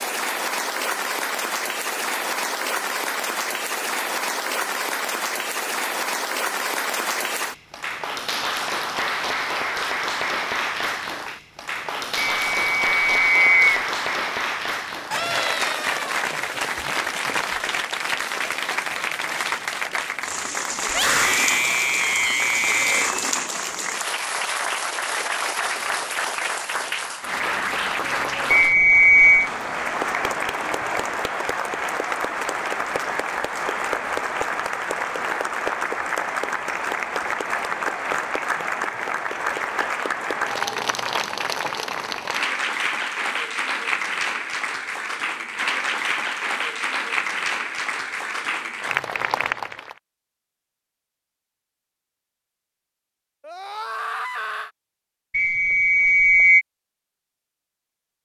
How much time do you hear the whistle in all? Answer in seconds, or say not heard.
4 s.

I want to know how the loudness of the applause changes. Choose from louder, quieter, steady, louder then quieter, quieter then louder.
steady.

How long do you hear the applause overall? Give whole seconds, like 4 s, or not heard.
50 s.